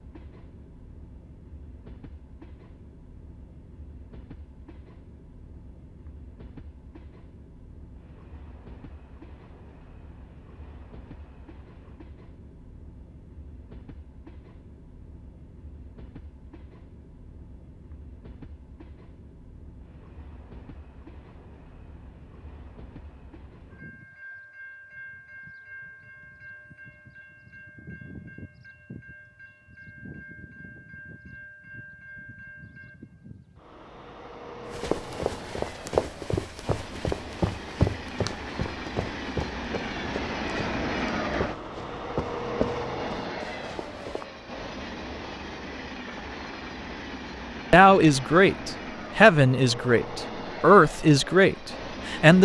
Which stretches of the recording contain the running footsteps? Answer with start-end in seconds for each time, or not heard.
34.7-44.2.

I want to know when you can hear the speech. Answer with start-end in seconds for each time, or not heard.
47.7-52.4.